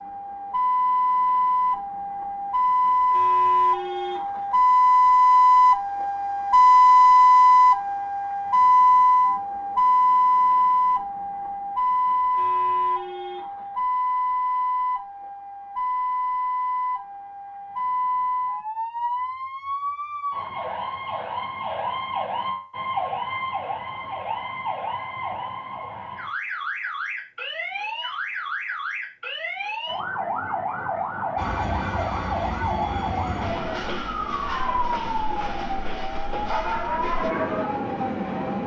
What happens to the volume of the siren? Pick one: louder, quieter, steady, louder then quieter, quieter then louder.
quieter.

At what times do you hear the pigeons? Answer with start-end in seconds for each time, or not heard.
not heard.